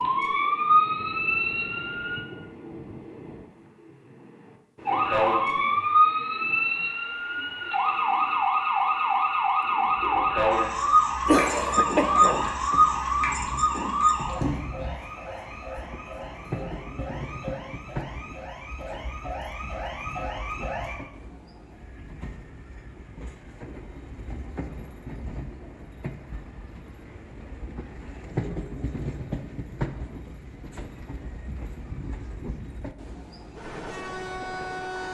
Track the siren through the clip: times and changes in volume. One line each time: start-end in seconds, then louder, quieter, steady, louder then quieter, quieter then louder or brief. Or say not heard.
0.0-2.2 brief
4.8-20.9 quieter.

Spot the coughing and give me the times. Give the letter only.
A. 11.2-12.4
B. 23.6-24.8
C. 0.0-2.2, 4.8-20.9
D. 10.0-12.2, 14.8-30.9
A.